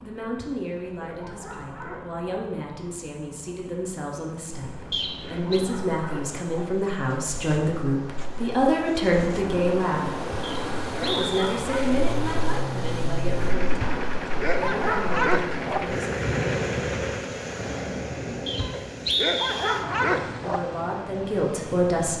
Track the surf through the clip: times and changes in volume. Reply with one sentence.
You can hear the surf from 4.5 to 22.1 s, getting louder then quieter.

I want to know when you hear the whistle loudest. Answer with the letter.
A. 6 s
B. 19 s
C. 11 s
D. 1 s
B.